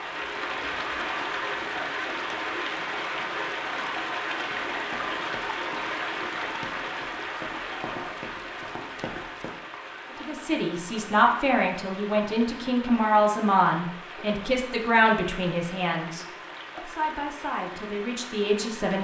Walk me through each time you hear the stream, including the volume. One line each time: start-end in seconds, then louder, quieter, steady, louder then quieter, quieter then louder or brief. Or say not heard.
0.0-19.0 quieter.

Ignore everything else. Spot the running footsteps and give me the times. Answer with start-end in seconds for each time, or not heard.
4.5-9.5.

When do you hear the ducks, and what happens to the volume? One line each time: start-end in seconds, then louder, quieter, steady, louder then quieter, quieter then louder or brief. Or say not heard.
not heard.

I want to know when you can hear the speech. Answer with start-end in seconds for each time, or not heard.
10.2-19.0.